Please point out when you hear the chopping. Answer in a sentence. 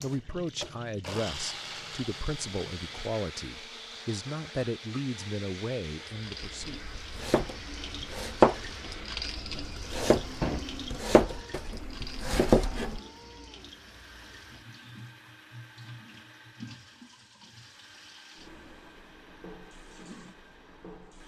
You can hear the chopping from 6.6 to 13.0 s.